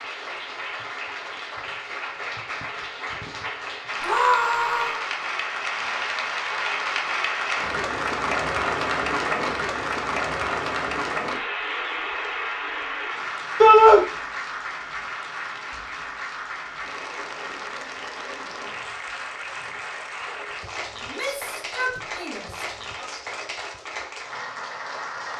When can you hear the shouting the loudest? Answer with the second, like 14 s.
14 s.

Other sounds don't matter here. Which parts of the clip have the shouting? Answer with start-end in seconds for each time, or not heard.
4.0-5.0, 13.6-14.0, 21.0-23.1.